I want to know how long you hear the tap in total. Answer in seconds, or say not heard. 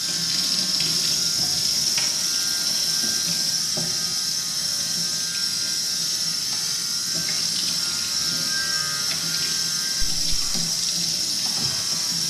12 s.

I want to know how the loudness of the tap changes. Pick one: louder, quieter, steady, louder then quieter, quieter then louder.
steady.